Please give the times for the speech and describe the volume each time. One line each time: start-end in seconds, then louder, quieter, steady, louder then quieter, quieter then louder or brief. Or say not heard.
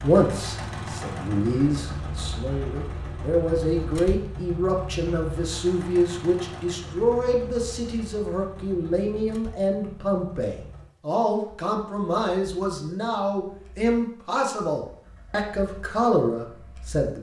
0.0-17.1 steady.